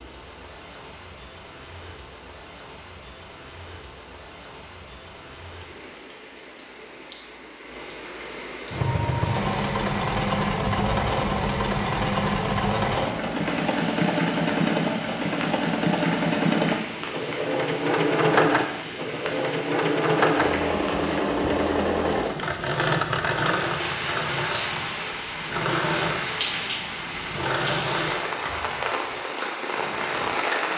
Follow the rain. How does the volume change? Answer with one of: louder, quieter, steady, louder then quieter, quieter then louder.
louder.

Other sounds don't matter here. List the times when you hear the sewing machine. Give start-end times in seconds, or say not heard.
8.7-29.2.